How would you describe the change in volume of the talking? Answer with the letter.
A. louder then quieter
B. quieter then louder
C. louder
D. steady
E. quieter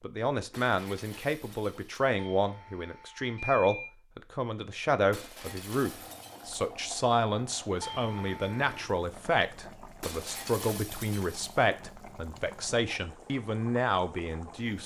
D.